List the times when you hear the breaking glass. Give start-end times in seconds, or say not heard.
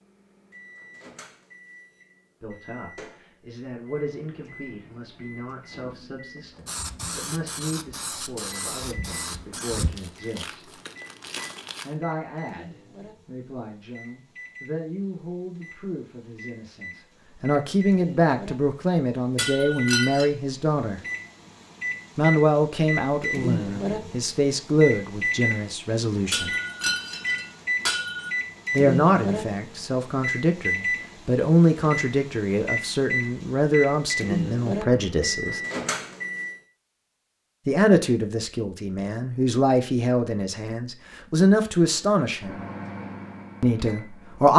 19.4-20.2, 26.3-28.3.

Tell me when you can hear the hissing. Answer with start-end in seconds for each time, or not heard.
6.7-9.9.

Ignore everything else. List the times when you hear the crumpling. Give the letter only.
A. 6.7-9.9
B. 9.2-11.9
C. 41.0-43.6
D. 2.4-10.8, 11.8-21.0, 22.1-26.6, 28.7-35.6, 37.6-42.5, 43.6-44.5
B.